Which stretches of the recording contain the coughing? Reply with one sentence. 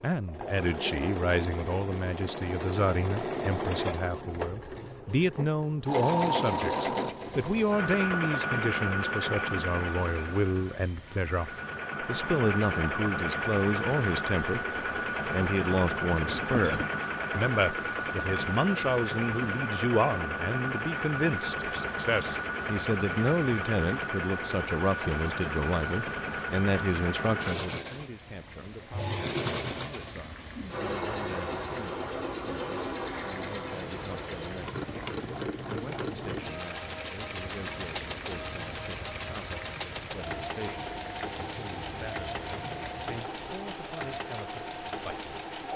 You can hear the coughing from 16.2 to 16.9 s.